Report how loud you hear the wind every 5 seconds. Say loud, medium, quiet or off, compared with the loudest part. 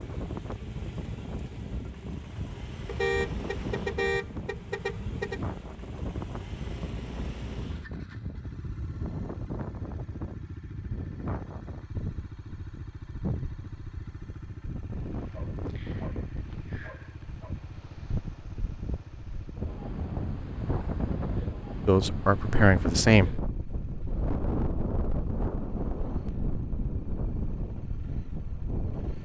medium, medium, medium, medium, loud, loud.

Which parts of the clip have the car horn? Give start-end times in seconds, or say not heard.
2.9-5.4.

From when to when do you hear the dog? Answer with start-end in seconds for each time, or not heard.
15.1-17.6.